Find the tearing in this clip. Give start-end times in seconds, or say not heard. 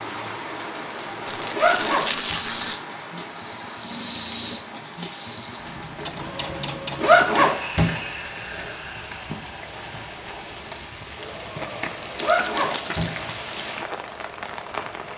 1.2-2.8, 12.0-13.7.